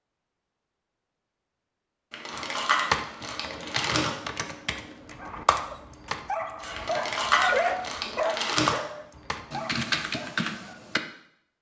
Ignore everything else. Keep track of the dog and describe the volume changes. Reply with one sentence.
The volume of the dog goes up, then down.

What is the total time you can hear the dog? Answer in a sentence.
The dog can be heard for 6 seconds in total.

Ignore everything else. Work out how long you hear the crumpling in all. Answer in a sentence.
You can hear the crumpling for 4 seconds altogether.